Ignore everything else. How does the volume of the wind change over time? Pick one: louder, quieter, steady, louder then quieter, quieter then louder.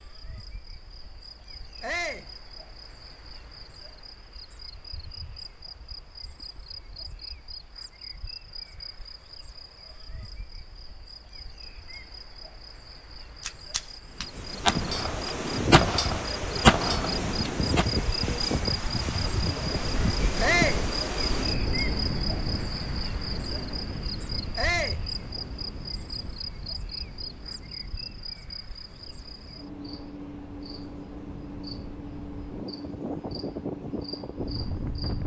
quieter then louder.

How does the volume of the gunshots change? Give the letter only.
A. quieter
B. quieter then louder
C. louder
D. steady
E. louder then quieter
E.